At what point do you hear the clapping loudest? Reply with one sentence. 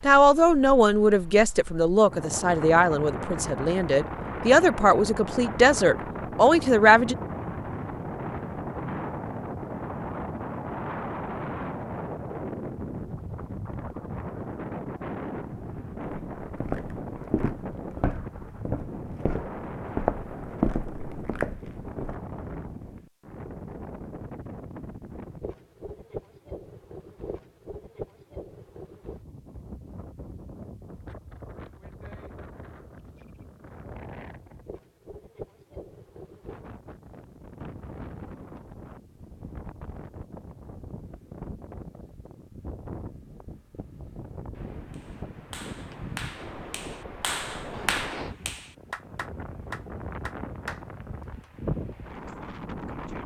The volume of the clapping peaks at 48 seconds.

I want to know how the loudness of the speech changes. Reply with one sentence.
The volume of the speech goes down, then up.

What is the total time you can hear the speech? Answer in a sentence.
You can hear the speech for 7 seconds altogether.